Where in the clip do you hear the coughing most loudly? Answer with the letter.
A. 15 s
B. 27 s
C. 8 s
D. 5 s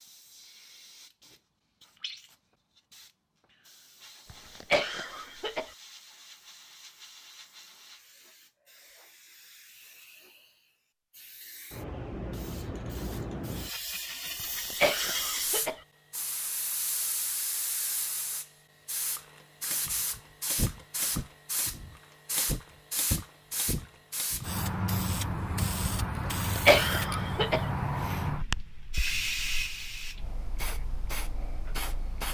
B.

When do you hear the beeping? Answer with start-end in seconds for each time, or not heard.
not heard.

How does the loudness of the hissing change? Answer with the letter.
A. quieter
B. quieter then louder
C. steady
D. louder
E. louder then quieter
D.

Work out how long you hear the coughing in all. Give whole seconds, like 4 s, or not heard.
4 s.